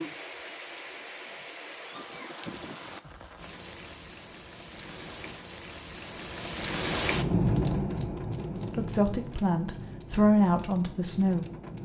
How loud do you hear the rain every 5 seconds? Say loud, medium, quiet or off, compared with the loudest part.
medium, loud, medium.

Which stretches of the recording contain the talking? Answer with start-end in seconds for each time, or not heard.
8.7-11.4.